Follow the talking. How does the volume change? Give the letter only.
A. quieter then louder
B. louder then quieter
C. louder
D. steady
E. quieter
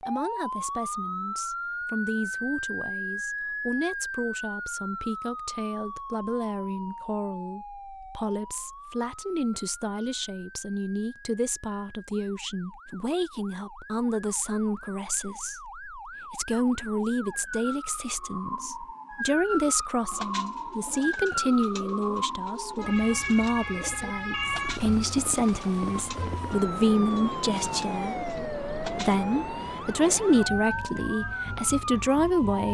C.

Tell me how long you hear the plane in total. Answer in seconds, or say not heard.
not heard.